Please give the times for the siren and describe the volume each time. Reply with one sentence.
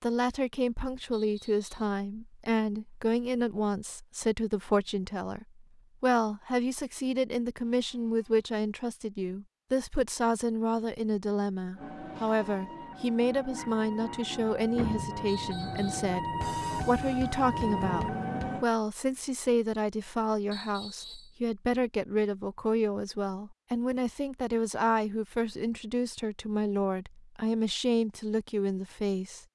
You can hear the siren from 11.8 to 18.6 s, getting louder.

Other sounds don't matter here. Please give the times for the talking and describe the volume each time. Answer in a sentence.
The talking can be heard from 0.0 to 29.4 s, at a steady volume.